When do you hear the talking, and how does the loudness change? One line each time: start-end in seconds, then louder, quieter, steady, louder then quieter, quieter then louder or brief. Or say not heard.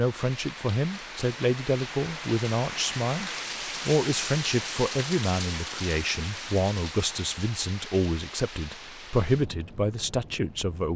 0.0-10.9 steady.